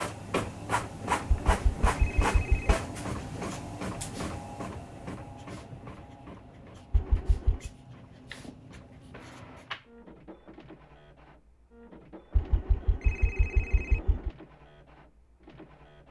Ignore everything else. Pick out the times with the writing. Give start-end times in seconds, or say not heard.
1.4-9.9.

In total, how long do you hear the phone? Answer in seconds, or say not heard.
4 s.